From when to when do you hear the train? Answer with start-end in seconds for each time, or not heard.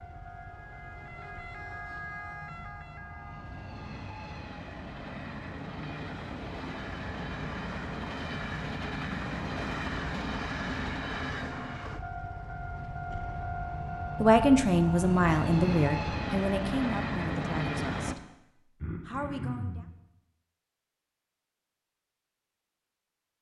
0.0-18.1.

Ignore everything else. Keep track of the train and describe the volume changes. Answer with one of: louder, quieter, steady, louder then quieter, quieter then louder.
louder.